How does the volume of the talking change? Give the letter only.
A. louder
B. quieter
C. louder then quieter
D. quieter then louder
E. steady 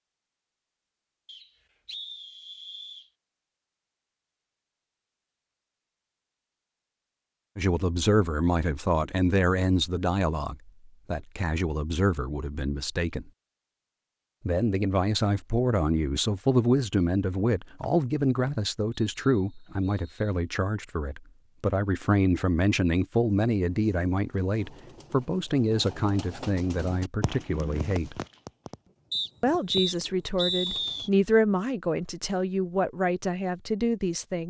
E.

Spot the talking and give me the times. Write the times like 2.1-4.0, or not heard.
7.5-13.3, 14.4-28.2, 29.4-34.4.